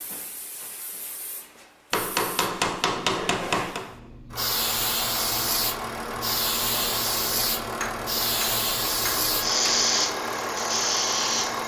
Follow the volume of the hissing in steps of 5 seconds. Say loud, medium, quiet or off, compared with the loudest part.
medium, loud, loud.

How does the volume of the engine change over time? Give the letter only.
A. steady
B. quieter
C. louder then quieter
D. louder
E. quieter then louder
A.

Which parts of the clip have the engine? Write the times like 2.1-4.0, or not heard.
4.3-11.6.